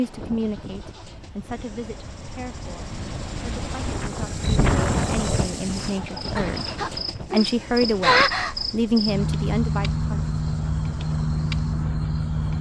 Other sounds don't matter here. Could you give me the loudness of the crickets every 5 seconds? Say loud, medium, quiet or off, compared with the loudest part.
off, loud, loud.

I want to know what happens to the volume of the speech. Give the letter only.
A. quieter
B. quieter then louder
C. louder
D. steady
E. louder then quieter
B.